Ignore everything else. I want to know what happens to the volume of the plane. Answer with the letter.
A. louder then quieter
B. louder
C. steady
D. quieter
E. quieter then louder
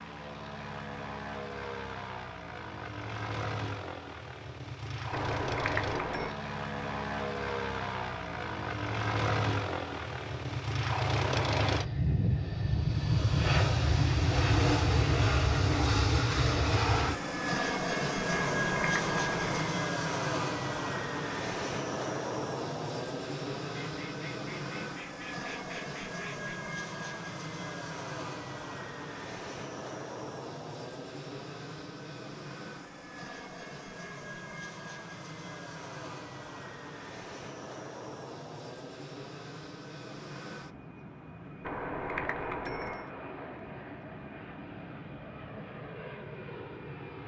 A.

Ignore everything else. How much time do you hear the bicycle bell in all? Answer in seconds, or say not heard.
4 s.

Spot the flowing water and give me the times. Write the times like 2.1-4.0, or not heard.
not heard.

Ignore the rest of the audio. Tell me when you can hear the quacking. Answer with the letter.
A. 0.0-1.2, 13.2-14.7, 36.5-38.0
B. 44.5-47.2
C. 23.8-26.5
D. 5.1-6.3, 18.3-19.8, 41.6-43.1
C.